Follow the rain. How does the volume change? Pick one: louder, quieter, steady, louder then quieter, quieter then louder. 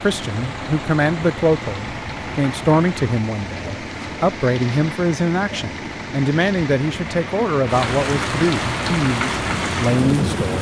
louder.